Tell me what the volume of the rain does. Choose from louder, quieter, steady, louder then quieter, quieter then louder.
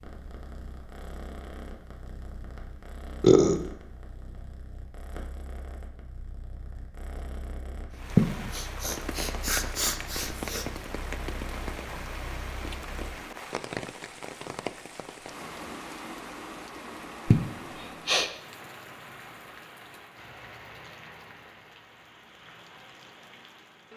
quieter.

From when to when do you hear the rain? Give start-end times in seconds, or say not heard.
7.9-23.9.